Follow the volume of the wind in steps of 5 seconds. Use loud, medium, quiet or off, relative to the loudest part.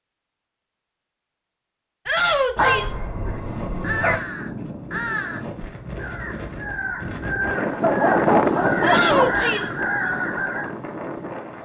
medium, loud, medium.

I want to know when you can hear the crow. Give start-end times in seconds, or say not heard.
3.2-10.7.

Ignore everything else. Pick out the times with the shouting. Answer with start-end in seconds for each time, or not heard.
2.0-3.0, 8.8-9.8.